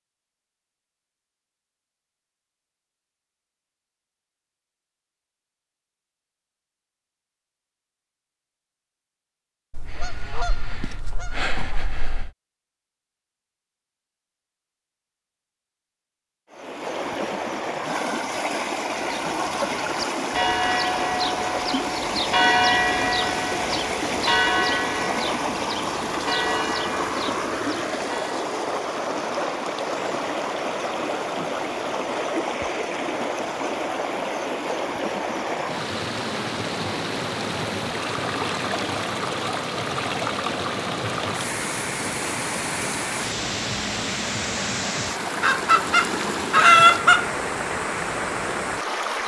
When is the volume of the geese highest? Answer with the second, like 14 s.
47 s.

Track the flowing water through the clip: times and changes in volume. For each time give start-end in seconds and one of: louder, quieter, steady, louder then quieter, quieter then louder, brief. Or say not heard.
16.5-49.2 steady.